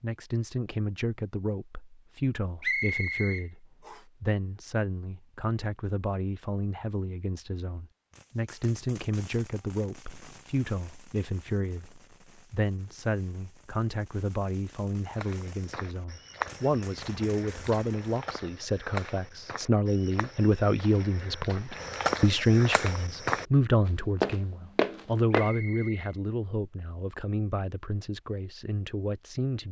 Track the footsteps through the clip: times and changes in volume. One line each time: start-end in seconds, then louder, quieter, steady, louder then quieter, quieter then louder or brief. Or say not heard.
15.1-25.5 quieter then louder.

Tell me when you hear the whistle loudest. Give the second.
3 s.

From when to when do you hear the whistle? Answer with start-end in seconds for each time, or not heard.
2.6-4.0, 25.3-26.1.